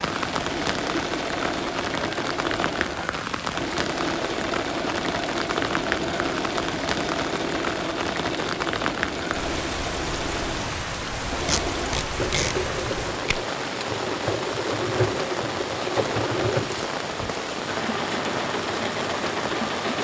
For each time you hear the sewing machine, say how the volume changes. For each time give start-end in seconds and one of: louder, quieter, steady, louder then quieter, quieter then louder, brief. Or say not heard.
0.0-19.9 steady.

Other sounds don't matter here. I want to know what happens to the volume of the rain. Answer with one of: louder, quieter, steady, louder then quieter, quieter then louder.
steady.